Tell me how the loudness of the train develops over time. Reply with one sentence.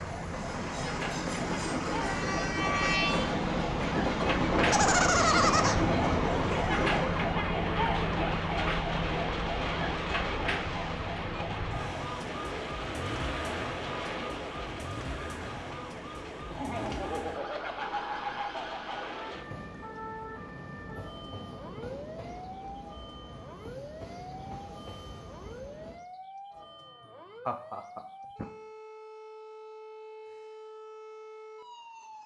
The loudness of the train goes down.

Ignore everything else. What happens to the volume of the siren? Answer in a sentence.
The volume of the siren goes down.